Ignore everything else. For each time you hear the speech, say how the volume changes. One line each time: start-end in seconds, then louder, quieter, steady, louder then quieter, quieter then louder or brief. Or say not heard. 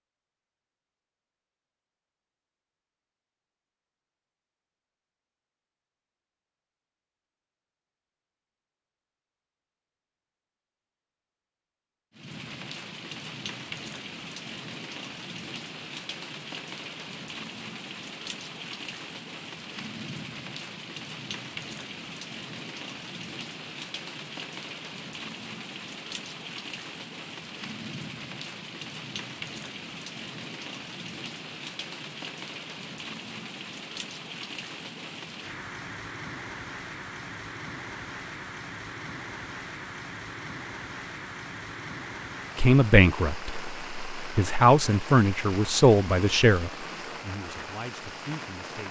42.5-48.8 quieter.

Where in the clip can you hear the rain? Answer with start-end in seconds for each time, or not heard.
12.1-48.8.